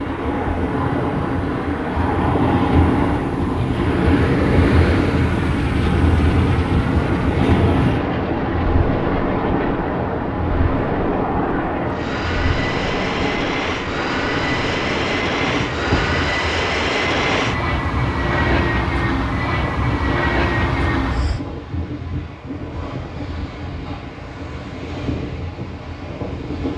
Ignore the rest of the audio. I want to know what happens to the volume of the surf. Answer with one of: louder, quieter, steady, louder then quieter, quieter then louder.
quieter.